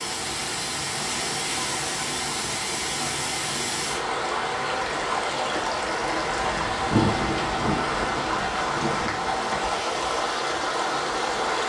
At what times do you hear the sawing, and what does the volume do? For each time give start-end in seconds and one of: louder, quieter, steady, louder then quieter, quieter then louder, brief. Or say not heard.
not heard.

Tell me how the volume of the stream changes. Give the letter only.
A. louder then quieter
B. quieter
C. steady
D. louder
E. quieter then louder
C.